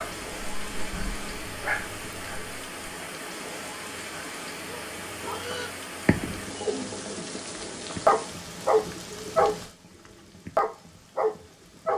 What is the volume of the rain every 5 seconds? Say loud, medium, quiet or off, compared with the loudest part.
loud, loud, quiet.